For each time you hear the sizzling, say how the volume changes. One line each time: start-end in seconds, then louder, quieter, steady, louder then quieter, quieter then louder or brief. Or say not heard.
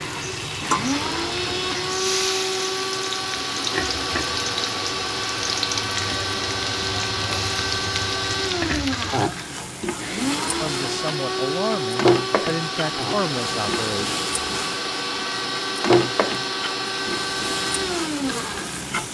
0.0-19.0 steady.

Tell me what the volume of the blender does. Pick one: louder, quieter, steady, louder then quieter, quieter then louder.
steady.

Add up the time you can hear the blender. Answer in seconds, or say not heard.
19 s.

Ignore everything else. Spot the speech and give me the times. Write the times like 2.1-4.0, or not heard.
10.6-14.2.